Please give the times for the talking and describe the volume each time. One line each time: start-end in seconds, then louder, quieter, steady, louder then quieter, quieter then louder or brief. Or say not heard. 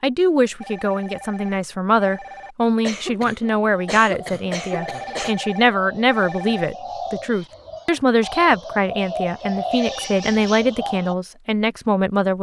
0.0-12.3 steady.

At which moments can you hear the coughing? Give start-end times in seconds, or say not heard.
2.8-5.3.